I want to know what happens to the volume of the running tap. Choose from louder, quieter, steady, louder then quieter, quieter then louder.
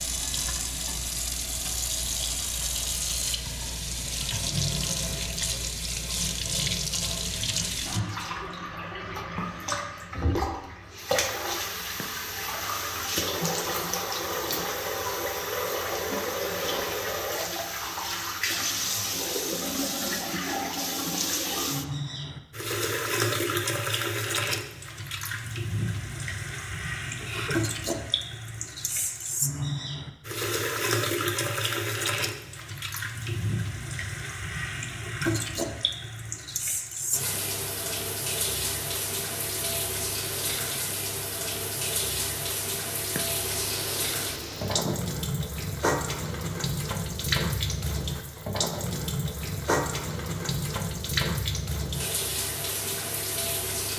steady.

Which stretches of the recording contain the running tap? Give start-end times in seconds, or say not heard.
0.0-53.9.